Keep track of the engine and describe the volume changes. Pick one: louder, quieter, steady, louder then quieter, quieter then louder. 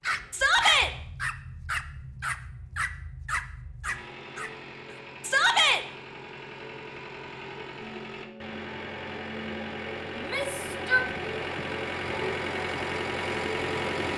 louder.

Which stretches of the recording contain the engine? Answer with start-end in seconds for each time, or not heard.
0.0-14.1.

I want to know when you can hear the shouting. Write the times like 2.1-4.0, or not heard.
0.3-0.9, 5.2-5.8, 10.2-11.1.